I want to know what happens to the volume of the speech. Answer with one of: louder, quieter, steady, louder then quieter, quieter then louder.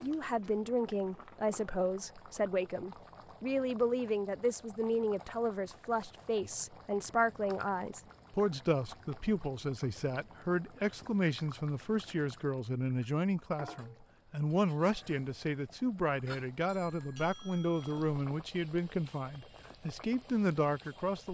steady.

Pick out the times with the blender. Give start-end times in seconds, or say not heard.
not heard.